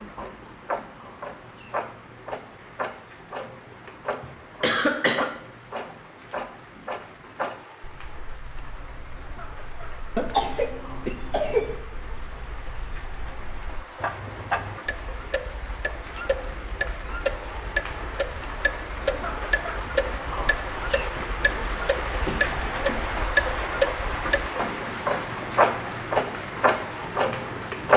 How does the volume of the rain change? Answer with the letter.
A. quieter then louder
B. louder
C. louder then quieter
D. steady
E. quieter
B.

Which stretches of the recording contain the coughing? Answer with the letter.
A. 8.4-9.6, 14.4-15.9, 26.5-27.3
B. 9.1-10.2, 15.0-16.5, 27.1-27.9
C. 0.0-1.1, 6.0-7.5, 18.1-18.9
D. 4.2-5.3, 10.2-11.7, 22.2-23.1
D.